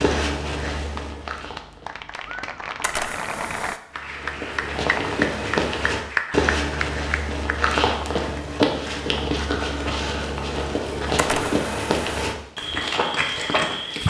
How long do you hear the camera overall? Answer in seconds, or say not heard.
2 s.